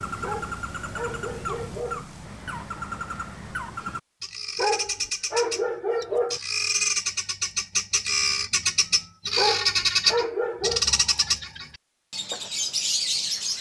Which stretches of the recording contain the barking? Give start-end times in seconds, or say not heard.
0.2-2.0, 4.5-6.4, 9.3-10.8.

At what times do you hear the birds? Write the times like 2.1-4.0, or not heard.
0.0-13.5.